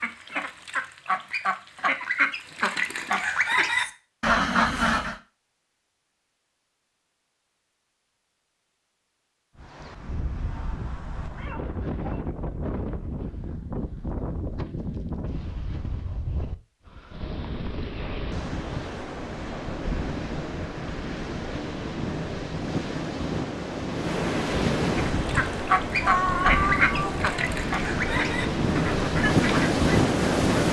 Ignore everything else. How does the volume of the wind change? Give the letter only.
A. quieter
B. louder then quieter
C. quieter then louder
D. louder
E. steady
D.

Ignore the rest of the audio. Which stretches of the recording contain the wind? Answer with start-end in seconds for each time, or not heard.
9.6-30.6.